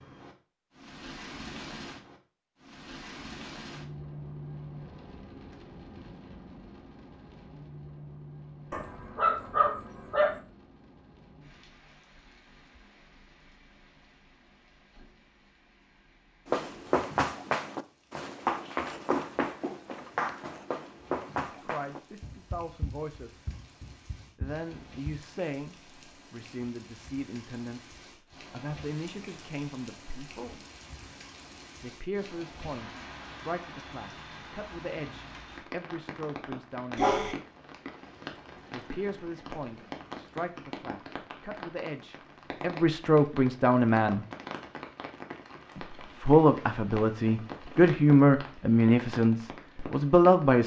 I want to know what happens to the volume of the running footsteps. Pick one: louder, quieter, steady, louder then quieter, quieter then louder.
quieter.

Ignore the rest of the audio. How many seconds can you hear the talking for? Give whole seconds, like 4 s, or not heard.
24 s.